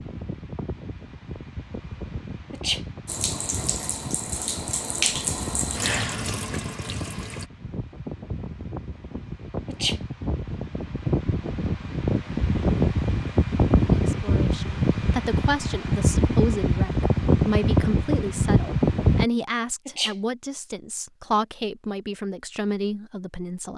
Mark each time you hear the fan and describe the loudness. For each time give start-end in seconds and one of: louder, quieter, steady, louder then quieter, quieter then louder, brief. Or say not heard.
0.0-19.2 louder.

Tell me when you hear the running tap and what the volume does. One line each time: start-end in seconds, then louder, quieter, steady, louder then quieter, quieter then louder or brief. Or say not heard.
3.0-7.5 louder then quieter.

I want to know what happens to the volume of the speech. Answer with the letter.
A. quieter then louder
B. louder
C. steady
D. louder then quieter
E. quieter
C.